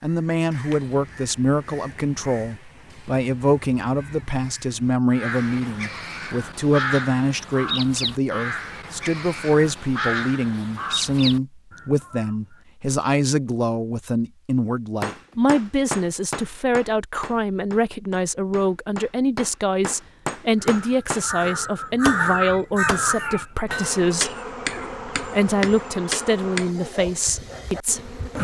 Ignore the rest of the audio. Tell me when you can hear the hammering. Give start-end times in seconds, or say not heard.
15.0-26.7.